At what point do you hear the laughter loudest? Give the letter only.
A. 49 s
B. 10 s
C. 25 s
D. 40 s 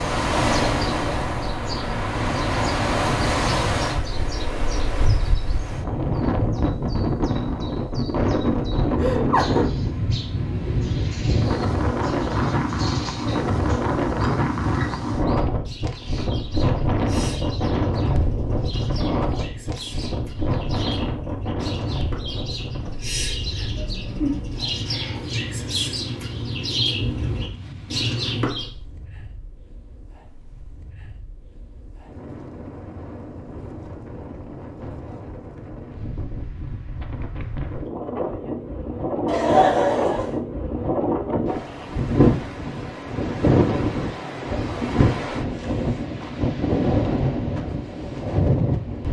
D.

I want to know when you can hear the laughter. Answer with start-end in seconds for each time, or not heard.
8.9-9.7, 23.6-24.4, 39.2-40.4.